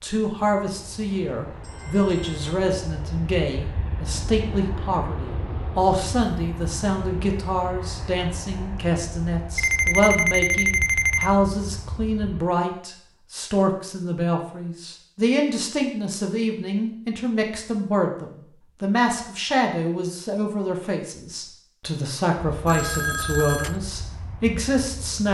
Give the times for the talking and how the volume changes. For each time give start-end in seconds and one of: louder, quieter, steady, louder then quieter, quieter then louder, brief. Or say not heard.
0.0-25.2 steady.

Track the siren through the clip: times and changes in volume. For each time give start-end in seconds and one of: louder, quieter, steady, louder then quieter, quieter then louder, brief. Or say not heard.
not heard.